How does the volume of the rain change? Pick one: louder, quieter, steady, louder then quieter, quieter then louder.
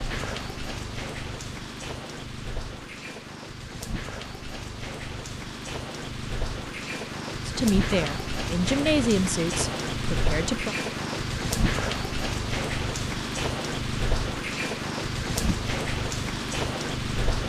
louder.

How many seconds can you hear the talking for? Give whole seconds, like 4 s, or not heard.
3 s.